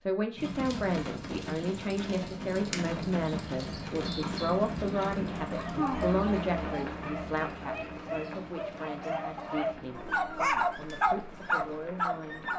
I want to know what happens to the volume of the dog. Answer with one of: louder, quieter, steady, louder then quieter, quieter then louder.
louder.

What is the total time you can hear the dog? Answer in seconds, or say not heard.
7 s.